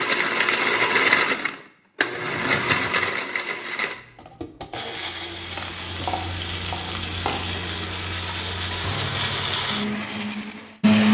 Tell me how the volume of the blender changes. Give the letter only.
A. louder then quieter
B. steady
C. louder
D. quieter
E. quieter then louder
E.